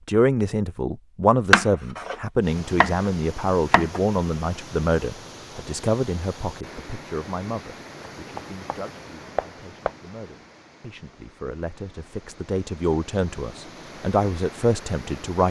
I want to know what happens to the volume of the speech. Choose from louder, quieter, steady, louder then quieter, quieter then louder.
quieter then louder.